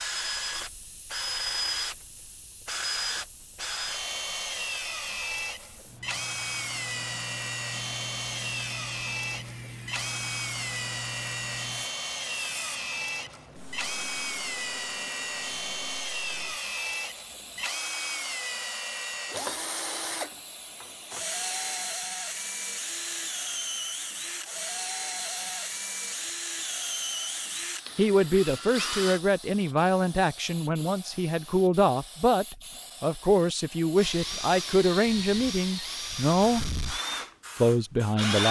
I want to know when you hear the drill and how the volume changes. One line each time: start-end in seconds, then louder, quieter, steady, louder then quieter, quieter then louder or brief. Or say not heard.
0.0-29.2 steady
34.0-38.4 quieter.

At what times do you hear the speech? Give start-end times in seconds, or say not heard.
27.9-36.6, 37.6-38.4.